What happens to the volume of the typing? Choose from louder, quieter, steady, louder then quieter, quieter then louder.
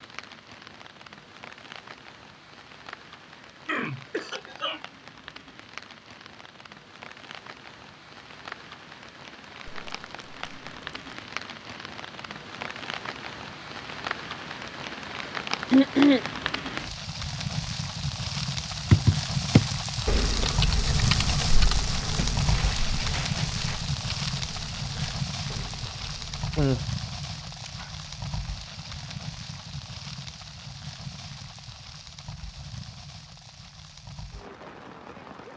quieter.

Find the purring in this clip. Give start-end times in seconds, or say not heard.
not heard.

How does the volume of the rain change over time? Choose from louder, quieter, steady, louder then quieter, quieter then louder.
louder then quieter.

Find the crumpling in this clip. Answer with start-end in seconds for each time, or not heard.
9.7-11.2, 22.1-23.8.